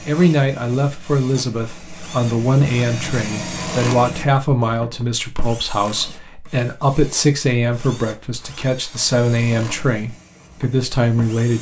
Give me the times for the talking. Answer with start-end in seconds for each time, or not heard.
0.1-11.5.